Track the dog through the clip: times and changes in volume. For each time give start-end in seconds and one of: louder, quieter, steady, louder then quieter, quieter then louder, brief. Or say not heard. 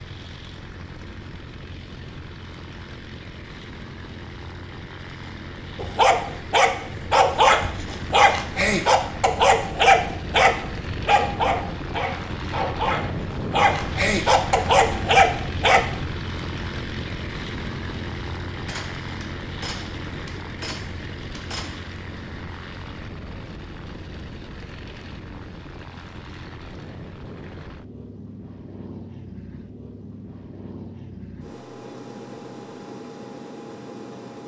5.8-15.8 quieter then louder.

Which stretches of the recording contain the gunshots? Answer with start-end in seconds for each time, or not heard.
18.6-22.2.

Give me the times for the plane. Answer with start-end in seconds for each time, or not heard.
0.0-34.4.